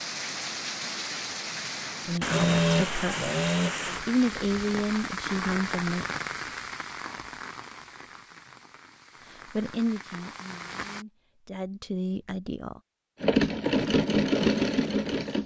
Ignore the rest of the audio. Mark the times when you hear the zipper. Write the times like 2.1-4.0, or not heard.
not heard.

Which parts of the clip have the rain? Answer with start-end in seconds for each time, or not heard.
0.0-11.1.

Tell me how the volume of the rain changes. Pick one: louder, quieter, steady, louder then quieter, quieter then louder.
quieter.